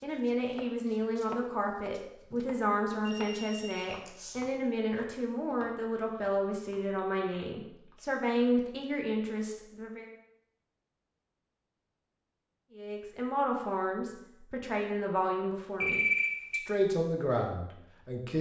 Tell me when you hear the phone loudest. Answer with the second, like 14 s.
16 s.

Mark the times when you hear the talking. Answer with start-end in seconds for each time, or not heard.
0.0-10.1, 12.8-18.3.